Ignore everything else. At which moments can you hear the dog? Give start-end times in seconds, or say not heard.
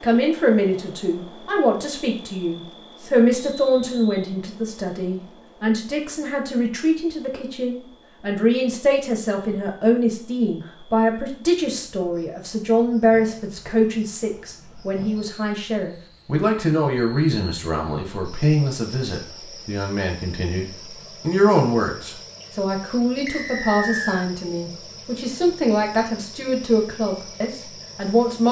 not heard.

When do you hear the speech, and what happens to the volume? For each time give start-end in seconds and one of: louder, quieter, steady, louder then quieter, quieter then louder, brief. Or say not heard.
0.0-28.4 steady.